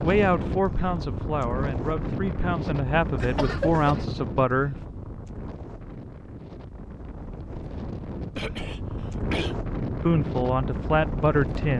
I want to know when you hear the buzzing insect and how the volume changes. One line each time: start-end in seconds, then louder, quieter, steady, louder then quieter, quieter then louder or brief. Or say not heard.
not heard.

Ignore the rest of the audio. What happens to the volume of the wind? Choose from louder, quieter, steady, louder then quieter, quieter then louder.
quieter then louder.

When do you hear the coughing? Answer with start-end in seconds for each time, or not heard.
3.1-4.0, 8.3-9.6.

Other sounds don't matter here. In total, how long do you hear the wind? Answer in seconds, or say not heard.
12 s.